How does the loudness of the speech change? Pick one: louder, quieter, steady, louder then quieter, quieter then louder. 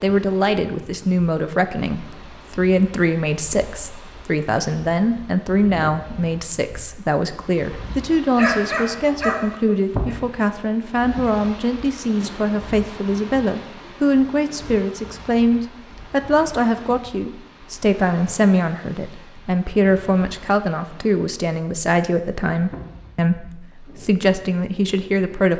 steady.